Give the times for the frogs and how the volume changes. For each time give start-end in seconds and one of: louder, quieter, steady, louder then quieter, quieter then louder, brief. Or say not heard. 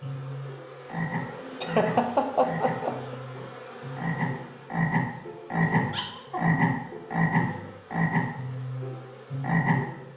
0.0-10.1 louder.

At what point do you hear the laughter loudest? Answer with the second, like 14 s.
2 s.